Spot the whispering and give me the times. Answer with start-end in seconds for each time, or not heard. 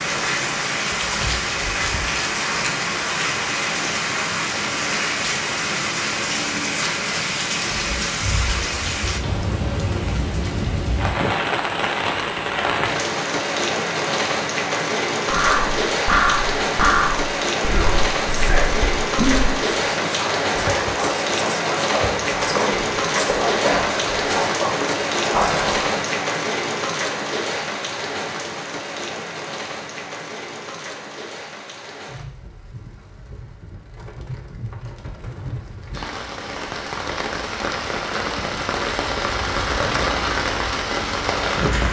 15.3-25.9.